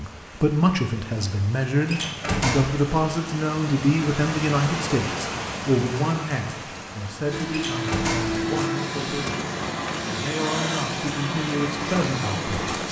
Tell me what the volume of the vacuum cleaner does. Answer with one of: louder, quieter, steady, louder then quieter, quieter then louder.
steady.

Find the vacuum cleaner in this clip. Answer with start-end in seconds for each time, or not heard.
7.2-12.8.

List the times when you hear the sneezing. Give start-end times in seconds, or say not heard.
not heard.